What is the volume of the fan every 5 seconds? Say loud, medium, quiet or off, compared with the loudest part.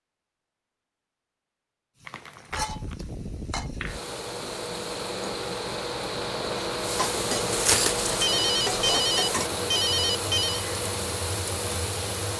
medium, loud, loud.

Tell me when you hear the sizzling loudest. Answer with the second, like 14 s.
9 s.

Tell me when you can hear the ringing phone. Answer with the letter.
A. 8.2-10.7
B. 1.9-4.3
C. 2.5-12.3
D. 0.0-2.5
A.